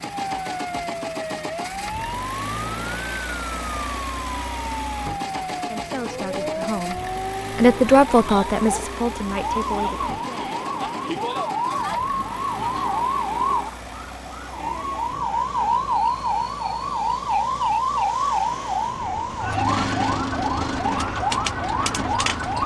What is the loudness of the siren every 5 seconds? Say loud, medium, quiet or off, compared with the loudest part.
medium, medium, loud, loud, loud.